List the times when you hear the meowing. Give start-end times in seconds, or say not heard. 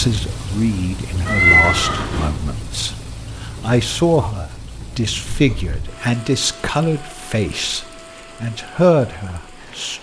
1.2-2.3, 5.2-5.9.